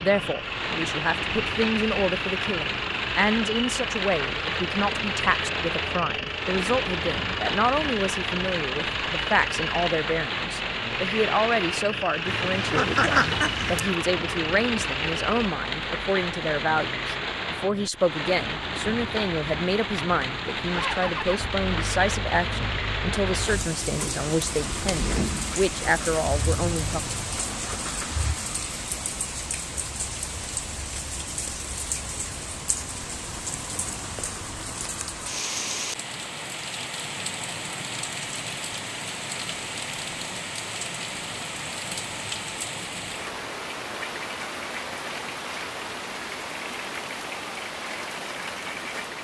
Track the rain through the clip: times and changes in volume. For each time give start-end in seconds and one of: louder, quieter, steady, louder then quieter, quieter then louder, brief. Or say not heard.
0.0-49.1 steady.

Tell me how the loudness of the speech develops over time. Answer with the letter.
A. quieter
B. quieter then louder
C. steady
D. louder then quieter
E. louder
C.